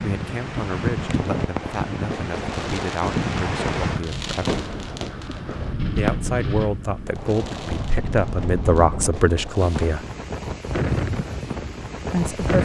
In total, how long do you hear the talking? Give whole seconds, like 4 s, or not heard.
9 s.